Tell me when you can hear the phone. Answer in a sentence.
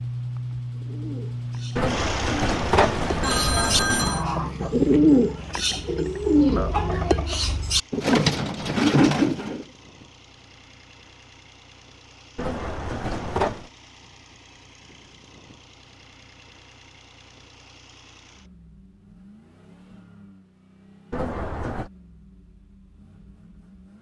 The phone can be heard from 1.8 to 4.2 s, from 12.3 to 13.7 s and from 21.1 to 21.9 s.